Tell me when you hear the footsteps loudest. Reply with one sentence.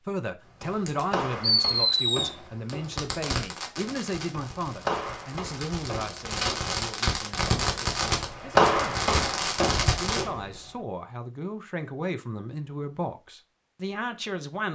The loudest moment of the footsteps is at 9 seconds.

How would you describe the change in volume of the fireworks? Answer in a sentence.
The volume of the fireworks goes down, then up.